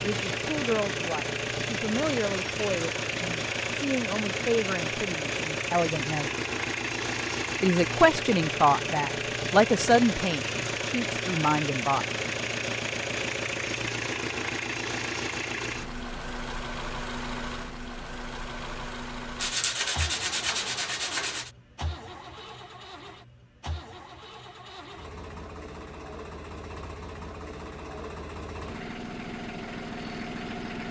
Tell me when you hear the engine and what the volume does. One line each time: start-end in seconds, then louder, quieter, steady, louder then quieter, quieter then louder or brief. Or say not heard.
0.0-30.8 quieter.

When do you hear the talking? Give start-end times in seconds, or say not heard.
0.0-6.3, 7.6-12.1.